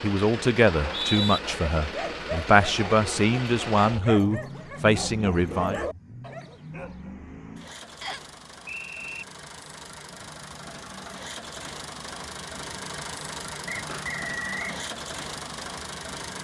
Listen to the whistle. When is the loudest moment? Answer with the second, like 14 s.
1 s.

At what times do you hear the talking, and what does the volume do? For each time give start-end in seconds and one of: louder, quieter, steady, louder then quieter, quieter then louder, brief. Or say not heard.
0.0-5.8 quieter then louder.